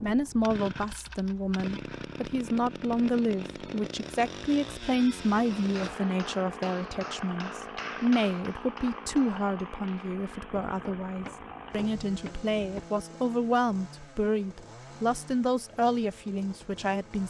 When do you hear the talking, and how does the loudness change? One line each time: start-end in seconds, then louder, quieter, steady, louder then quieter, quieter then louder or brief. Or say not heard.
0.0-17.2 steady.